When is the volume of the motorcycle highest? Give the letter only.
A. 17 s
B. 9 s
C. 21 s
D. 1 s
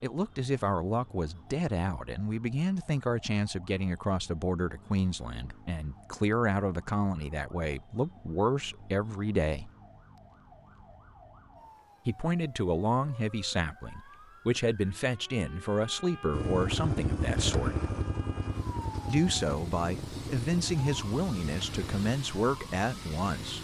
A.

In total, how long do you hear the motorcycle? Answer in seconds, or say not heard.
6 s.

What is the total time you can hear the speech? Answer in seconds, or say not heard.
20 s.